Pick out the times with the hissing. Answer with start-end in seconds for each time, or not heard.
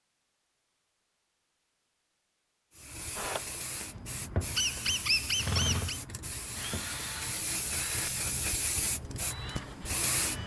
2.7-10.4.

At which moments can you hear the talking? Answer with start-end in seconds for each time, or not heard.
not heard.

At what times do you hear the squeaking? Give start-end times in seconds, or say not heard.
4.5-6.0.